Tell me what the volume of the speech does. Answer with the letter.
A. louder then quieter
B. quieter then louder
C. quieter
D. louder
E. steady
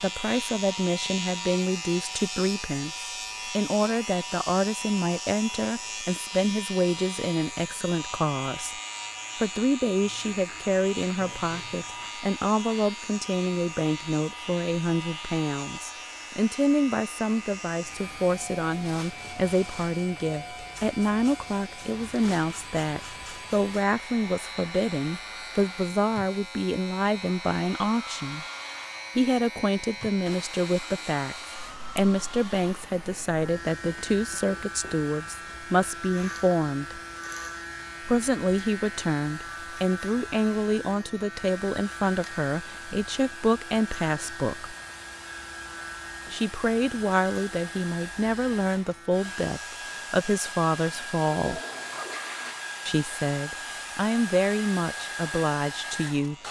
E.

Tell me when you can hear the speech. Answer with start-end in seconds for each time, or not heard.
0.0-28.4, 29.1-37.0, 38.0-44.8, 46.3-51.6, 52.9-56.4.